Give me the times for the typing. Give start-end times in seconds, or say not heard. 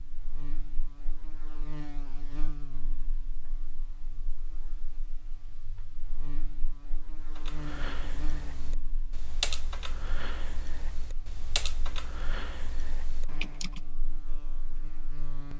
7.2-13.8.